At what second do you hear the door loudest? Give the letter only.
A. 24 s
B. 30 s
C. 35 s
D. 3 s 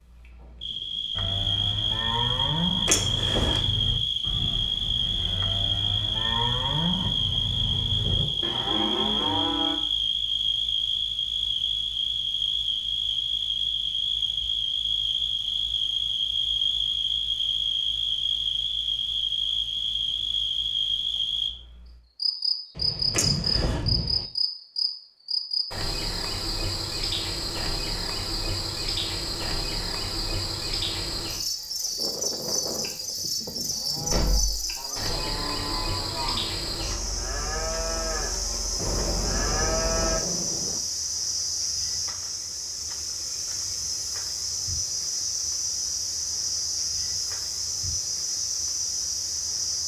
D.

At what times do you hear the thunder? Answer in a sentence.
You can hear the thunder from 7.0 to 8.6 s, from 22.8 to 24.2 s and from 38.8 to 40.8 s.